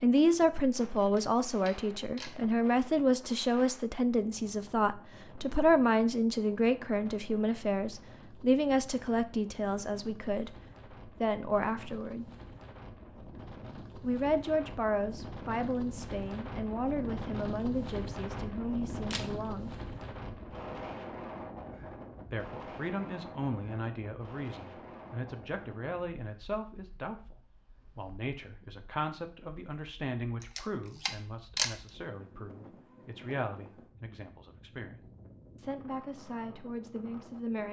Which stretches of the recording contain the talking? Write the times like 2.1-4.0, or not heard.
0.0-10.6, 11.2-12.3, 14.0-19.7, 22.3-27.4, 27.9-35.0, 35.5-37.6.